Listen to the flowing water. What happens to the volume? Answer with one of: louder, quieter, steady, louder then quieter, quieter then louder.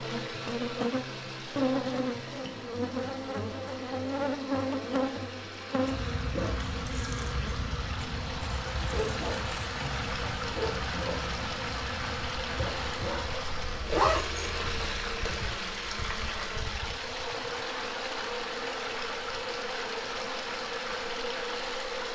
louder.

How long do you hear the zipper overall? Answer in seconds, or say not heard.
2 s.